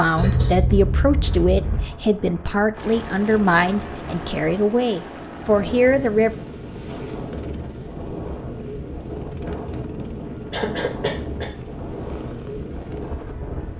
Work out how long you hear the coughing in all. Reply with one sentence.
You can hear the coughing for 3 seconds altogether.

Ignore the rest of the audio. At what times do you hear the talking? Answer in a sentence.
You can hear the talking from 0.0 to 6.3 s.